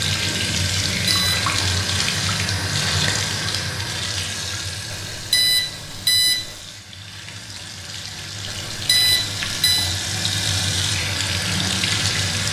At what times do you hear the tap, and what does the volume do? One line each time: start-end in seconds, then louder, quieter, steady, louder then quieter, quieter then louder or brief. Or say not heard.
0.0-12.4 quieter then louder.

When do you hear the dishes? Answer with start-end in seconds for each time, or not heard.
not heard.